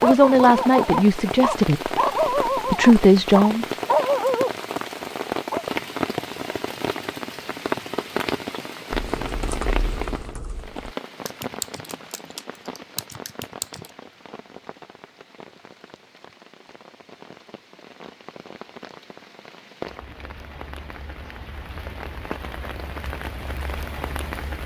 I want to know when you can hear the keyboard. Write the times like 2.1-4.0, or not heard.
8.9-13.9.